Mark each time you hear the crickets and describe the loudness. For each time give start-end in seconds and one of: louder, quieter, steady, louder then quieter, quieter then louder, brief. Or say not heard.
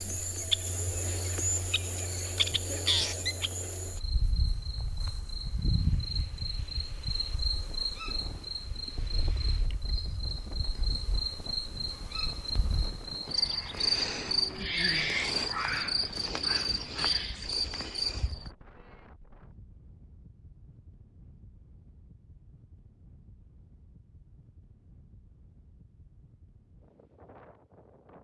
0.0-18.5 quieter then louder.